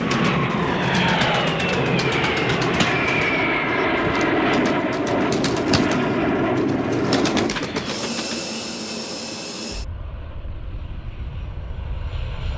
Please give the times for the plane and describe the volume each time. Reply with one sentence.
The plane can be heard from 0.0 to 12.5 s, getting quieter.